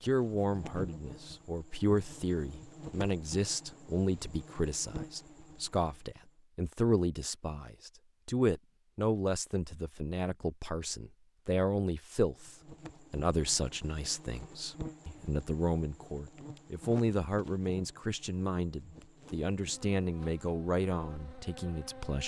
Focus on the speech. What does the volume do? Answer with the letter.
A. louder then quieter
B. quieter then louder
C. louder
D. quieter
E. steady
E.